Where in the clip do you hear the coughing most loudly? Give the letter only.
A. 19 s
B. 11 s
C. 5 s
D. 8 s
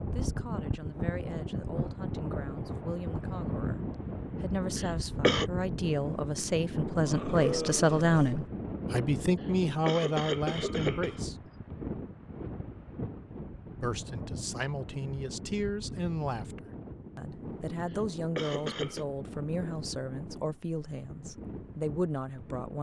C.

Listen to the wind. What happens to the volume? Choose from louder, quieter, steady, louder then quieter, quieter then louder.
quieter.